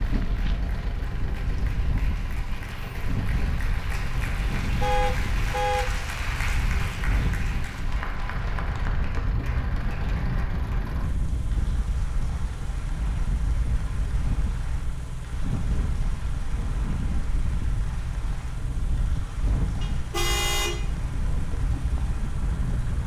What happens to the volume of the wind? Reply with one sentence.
The volume of the wind stays about the same.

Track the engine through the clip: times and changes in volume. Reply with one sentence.
The engine can be heard from 0.0 to 23.0 s, at a steady volume.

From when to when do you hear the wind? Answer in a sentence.
You can hear the wind from 0.0 to 23.0 s.